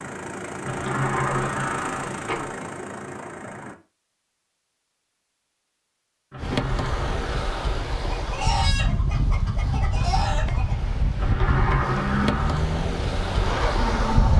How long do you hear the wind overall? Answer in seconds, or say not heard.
8 s.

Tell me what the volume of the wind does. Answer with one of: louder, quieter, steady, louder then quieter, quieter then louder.
steady.